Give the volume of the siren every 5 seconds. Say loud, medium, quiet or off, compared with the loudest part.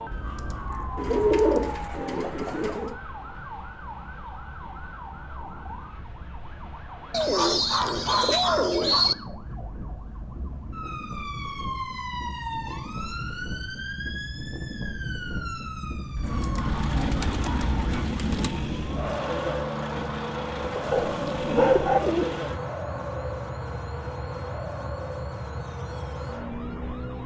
medium, medium, loud, loud, loud, loud.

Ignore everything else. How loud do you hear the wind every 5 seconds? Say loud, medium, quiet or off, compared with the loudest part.
quiet, medium, medium, loud, loud, medium.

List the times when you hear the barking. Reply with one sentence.
The barking can be heard from 0.1 to 1.8 s, from 7.2 to 9.1 s, from 16.1 to 18.1 s and from 20.9 to 22.0 s.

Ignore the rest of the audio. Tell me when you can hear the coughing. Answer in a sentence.
You can't hear the coughing here.